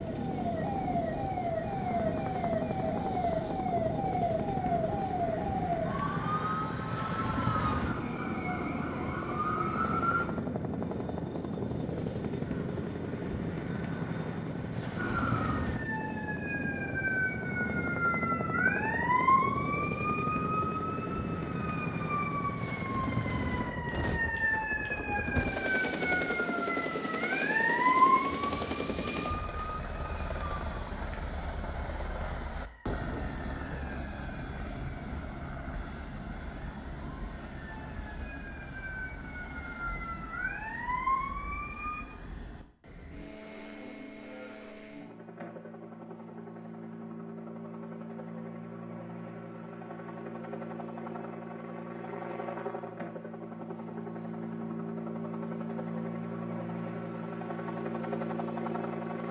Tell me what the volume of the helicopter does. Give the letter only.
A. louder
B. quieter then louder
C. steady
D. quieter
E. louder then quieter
B.